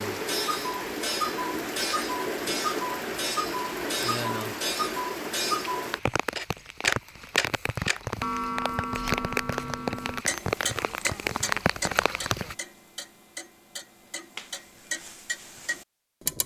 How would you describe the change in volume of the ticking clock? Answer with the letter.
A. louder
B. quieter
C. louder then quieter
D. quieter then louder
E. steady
B.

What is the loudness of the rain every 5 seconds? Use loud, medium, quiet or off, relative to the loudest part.
loud, loud, loud, off.